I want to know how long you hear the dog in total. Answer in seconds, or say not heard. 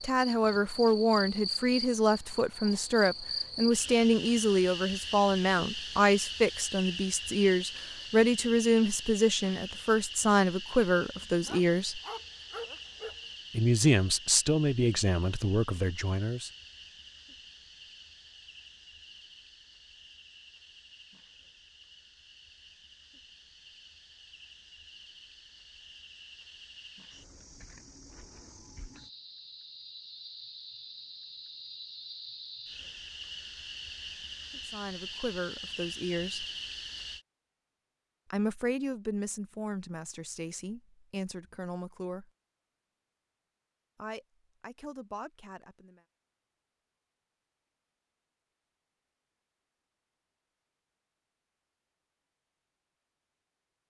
2 s.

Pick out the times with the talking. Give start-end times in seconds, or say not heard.
0.0-12.0, 13.5-16.5, 34.6-36.5, 38.3-42.3, 44.0-46.0.